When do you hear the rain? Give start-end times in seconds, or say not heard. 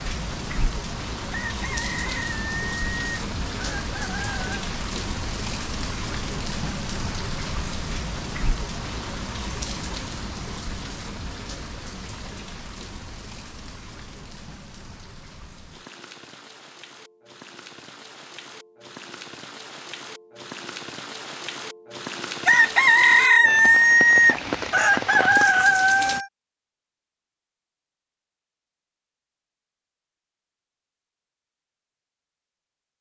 0.0-26.2.